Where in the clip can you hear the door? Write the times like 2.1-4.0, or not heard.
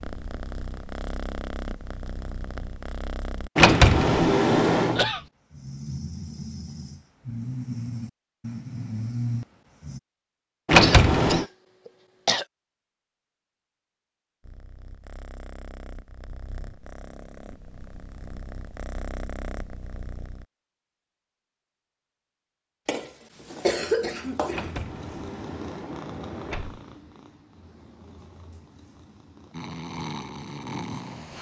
3.5-5.0, 10.7-11.4, 24.5-26.8.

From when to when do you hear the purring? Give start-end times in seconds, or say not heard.
0.0-3.5, 14.4-20.4, 23.3-31.3.